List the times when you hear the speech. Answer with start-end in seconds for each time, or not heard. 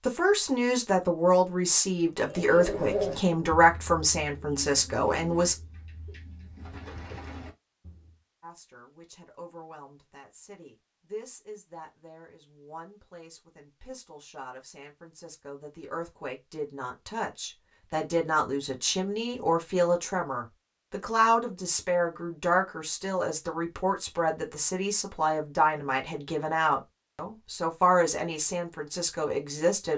0.1-5.5, 8.4-29.9.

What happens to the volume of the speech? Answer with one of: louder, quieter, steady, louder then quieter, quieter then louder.
quieter then louder.